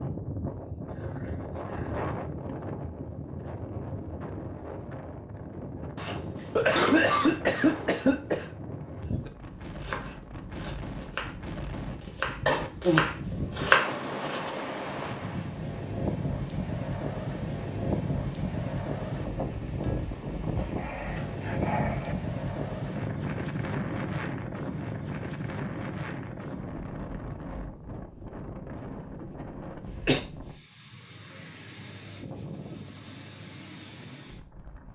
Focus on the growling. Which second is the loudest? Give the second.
22 s.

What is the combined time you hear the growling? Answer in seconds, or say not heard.
3 s.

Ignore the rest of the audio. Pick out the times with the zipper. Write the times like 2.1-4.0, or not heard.
not heard.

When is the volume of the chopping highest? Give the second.
14 s.